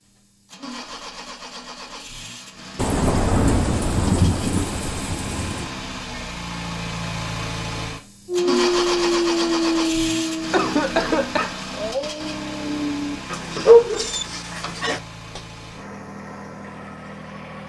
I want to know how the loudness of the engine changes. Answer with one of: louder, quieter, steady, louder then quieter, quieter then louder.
louder then quieter.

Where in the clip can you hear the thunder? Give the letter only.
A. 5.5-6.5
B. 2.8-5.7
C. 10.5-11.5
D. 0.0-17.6
B.